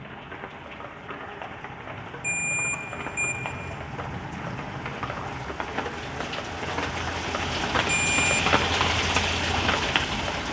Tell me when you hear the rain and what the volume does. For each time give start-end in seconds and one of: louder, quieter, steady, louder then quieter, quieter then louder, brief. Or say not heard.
0.0-10.4 louder.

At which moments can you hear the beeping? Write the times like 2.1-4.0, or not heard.
2.2-3.4, 7.8-8.5.